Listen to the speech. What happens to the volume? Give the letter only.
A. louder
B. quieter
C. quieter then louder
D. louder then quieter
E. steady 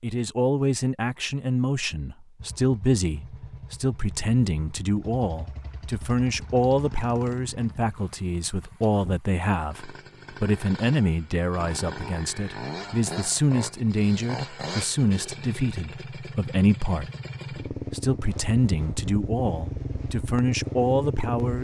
E.